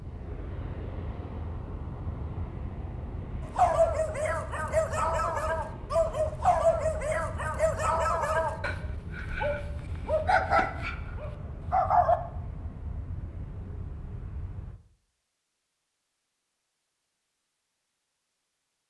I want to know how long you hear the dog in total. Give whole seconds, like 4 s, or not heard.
9 s.